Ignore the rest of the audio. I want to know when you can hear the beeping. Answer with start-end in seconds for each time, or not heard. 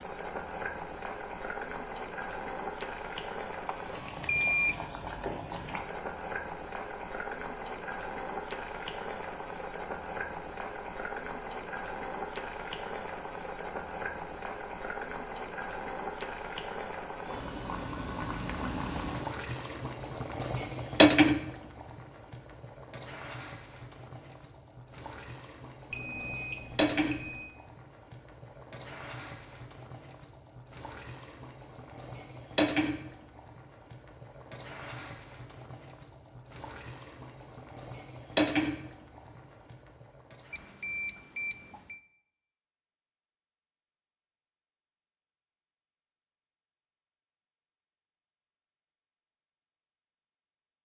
3.6-4.8, 25.9-27.5, 40.5-42.0.